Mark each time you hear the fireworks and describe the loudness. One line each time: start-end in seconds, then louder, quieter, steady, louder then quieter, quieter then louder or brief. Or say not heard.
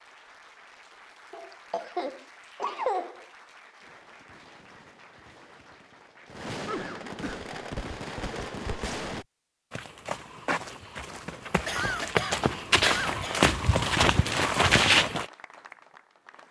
3.8-9.2 louder.